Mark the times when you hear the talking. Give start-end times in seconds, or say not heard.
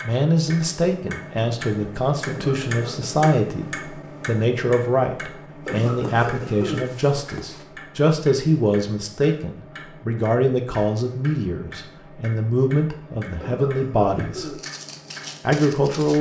0.0-14.4, 15.4-16.1.